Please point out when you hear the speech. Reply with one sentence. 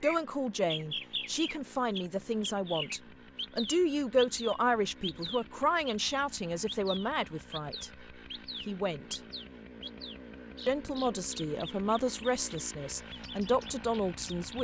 The speech can be heard from 0.0 to 8.1 s, from 8.7 to 9.2 s and from 10.7 to 14.5 s.